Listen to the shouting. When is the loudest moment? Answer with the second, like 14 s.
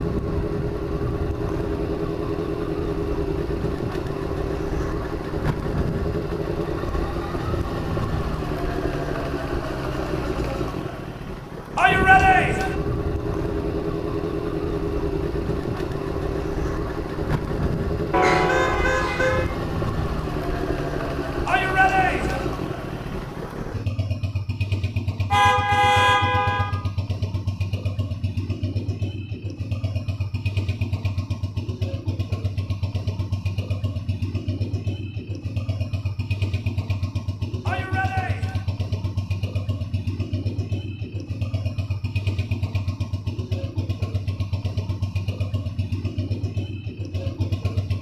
12 s.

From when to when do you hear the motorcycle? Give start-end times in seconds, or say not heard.
0.0-47.9.